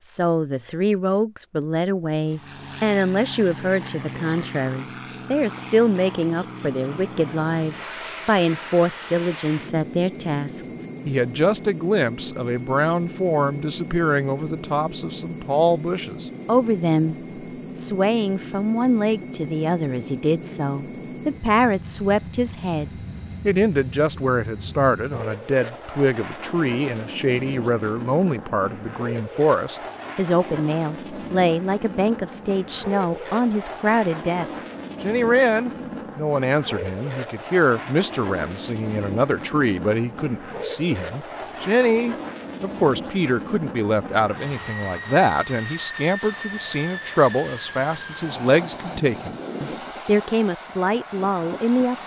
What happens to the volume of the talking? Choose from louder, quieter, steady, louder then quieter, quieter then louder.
steady.